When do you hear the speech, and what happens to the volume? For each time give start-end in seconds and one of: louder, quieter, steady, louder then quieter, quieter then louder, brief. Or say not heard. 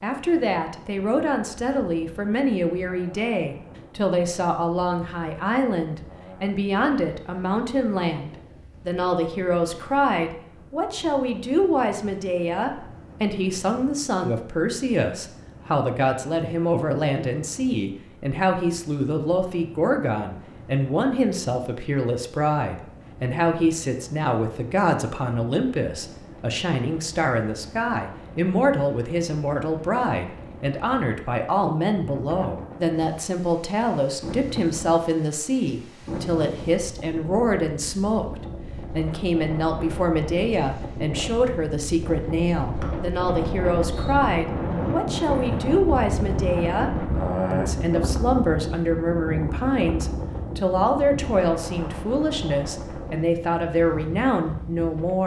0.0-55.2 steady.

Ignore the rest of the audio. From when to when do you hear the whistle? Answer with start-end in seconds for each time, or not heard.
42.8-44.1.